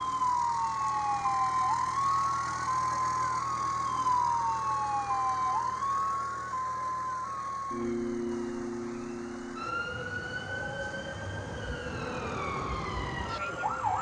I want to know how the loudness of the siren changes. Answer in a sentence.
The volume of the siren goes down.